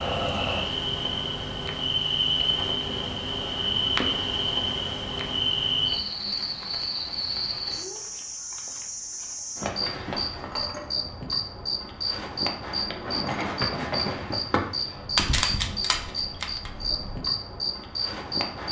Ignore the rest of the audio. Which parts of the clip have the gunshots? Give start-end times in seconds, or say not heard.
15.2-17.0.